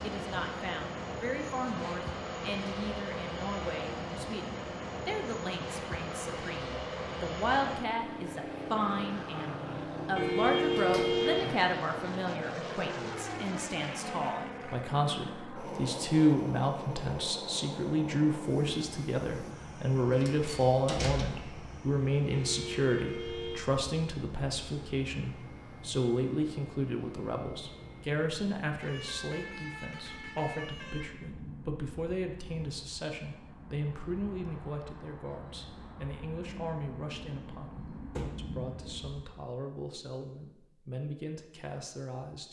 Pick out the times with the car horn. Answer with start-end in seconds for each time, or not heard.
10.2-11.4, 22.3-23.6, 28.8-31.1.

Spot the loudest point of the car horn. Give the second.
11 s.